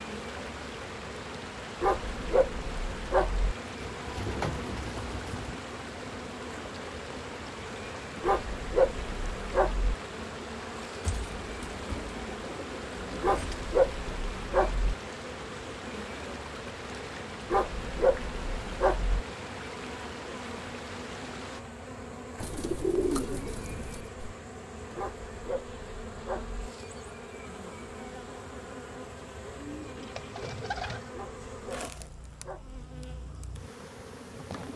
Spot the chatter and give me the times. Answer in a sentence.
The chatter can't be heard in this clip.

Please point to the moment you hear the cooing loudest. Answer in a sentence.
The loudest moment of the cooing is at 23 seconds.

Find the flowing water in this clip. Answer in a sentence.
The flowing water can be heard from 0.0 to 21.6 s.